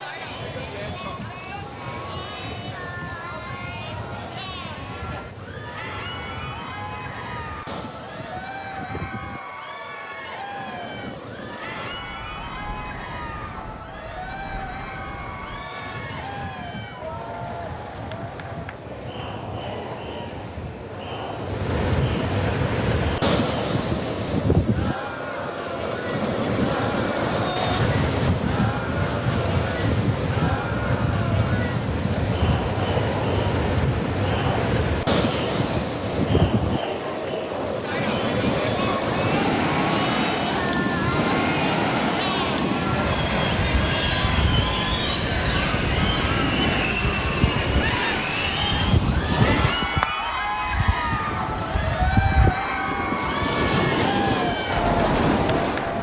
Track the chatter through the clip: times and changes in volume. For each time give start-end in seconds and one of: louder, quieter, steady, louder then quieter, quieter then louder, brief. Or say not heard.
0.0-55.9 louder.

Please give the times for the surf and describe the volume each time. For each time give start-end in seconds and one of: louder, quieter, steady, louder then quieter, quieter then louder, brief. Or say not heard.
0.0-55.9 louder.